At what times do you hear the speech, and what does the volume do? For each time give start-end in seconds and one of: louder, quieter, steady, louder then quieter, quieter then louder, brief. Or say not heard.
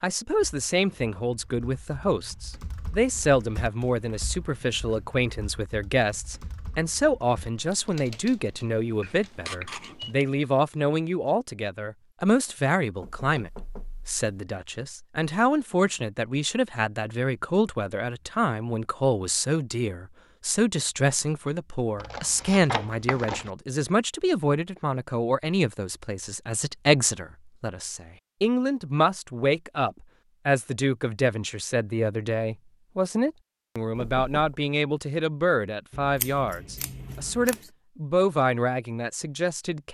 0.0-39.8 steady.